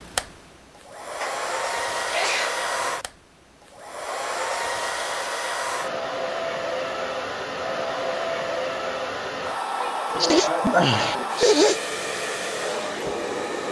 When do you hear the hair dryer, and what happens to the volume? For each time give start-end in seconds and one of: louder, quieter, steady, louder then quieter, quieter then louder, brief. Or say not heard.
0.0-13.6 steady.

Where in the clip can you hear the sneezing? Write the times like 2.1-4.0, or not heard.
1.2-2.6, 9.8-11.8.